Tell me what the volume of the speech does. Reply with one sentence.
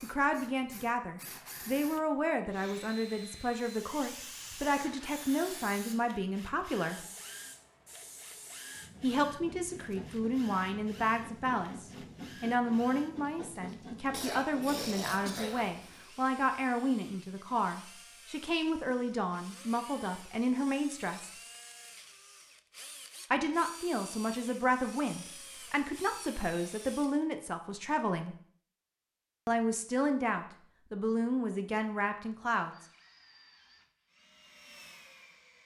The loudness of the speech stays about the same.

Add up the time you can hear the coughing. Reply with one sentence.
The coughing can be heard for 2 seconds in total.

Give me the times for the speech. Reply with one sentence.
You can hear the speech from 0.0 to 7.0 s, from 9.0 to 21.3 s, from 23.3 to 28.4 s and from 29.4 to 32.8 s.